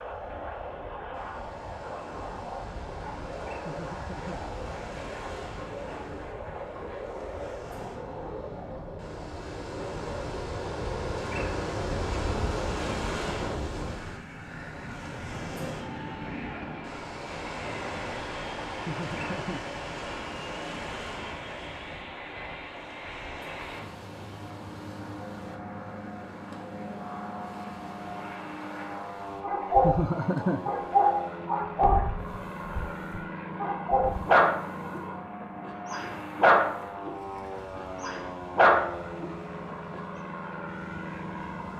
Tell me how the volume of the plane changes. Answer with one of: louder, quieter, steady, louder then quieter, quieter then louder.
steady.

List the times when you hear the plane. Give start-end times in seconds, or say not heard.
0.0-41.7.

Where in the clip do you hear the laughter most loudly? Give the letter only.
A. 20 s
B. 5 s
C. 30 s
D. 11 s
C.